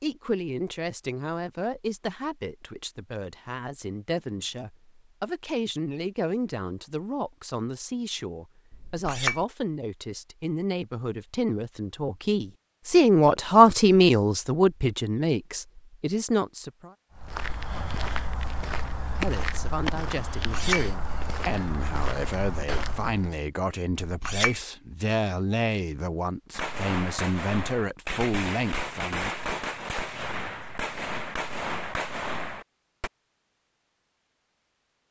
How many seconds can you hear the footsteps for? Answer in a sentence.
The footsteps can be heard for 6 seconds in total.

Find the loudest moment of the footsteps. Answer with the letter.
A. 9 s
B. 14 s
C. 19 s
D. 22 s
C.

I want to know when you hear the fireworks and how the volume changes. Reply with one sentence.
You can hear the fireworks from 26.5 to 33.1 s, at a steady volume.